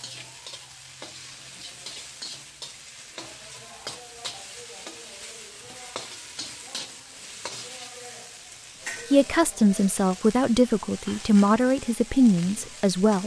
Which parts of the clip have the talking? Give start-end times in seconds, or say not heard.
9.1-13.2.